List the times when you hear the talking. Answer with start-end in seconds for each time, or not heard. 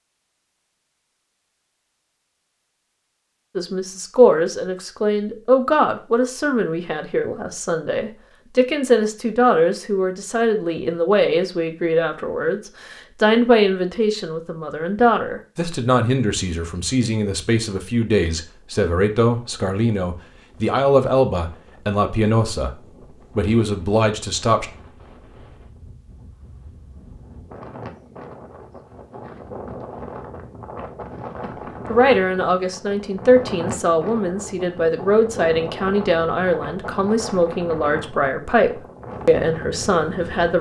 3.5-24.6, 31.4-40.5.